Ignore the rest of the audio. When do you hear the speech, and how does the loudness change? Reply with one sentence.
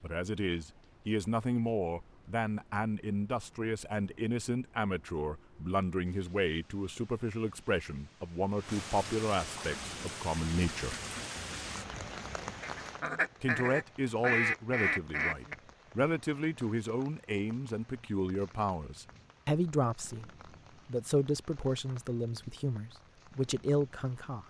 You can hear the speech from 0.0 to 10.9 s, at a steady volume; and from 13.4 to 24.4 s, at a steady volume.